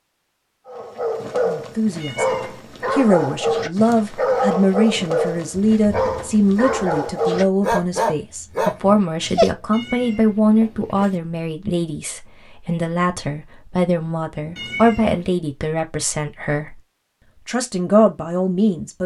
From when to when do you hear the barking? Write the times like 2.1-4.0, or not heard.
0.7-9.6.